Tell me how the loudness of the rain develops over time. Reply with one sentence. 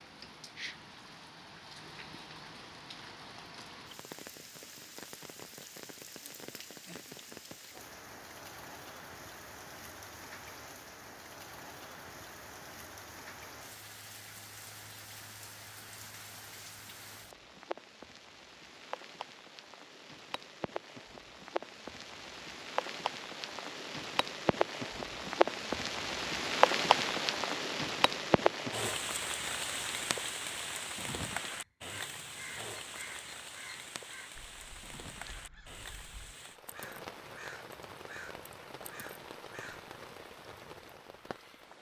The loudness of the rain goes up, then down.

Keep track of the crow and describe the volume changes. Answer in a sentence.
The loudness of the crow goes down, then up.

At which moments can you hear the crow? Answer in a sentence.
The crow can be heard from 31.5 to 39.8 s.